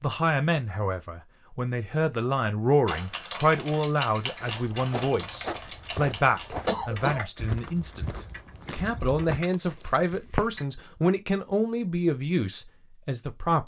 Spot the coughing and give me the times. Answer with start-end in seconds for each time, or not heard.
6.1-7.2.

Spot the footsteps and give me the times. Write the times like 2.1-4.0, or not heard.
4.4-10.6.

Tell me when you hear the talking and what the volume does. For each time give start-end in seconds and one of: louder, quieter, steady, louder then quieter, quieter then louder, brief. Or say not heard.
0.0-13.6 steady.